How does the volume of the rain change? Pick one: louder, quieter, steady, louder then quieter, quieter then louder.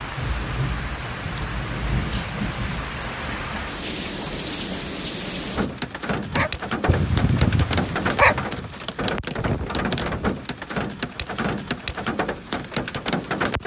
steady.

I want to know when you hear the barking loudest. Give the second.
8 s.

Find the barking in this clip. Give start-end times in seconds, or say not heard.
6.2-8.8.